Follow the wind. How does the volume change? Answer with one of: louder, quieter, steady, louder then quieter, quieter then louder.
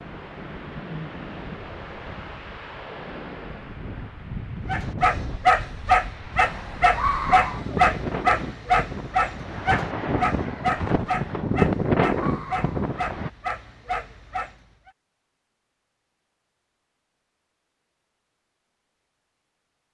louder.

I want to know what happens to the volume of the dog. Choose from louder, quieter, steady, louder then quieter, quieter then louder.
quieter.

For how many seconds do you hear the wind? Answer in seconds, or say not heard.
13 s.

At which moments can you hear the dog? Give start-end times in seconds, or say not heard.
4.7-14.9.